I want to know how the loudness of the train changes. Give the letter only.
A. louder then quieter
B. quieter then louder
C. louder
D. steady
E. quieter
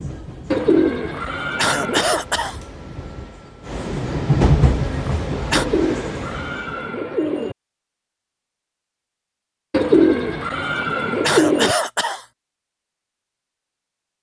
A.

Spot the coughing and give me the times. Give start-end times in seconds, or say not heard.
1.1-2.6, 5.0-5.7, 10.8-12.2.